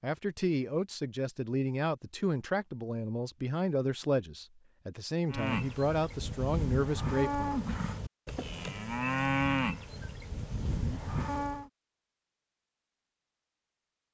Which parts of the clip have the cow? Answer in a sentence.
The cow can be heard from 5.3 to 11.7 s.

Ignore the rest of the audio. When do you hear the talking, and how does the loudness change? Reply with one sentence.
The talking can be heard from 0.0 to 7.7 s, at a steady volume.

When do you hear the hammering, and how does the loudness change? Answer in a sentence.
The hammering can't be heard in this clip.